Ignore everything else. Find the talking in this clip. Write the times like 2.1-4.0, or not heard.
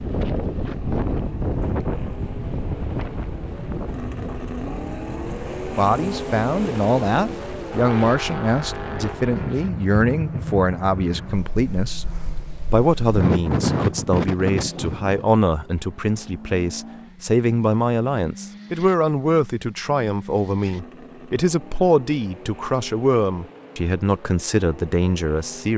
5.8-12.1, 12.7-25.7.